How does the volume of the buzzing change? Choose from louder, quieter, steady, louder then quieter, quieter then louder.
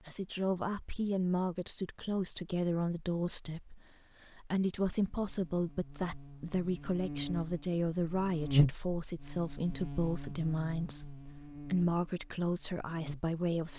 louder then quieter.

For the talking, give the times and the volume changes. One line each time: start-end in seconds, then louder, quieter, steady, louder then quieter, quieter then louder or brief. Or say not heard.
0.1-13.7 steady.